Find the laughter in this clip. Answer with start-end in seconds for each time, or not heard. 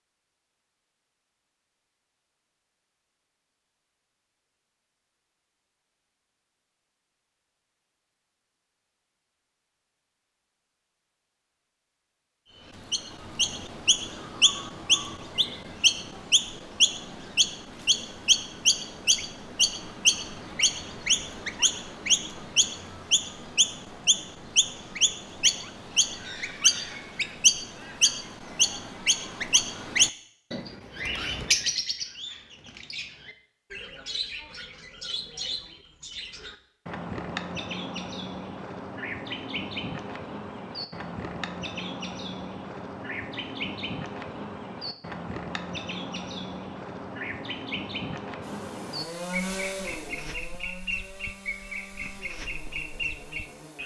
not heard.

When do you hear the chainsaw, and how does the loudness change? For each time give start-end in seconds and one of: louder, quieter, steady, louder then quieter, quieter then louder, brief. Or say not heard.
48.4-53.8 quieter.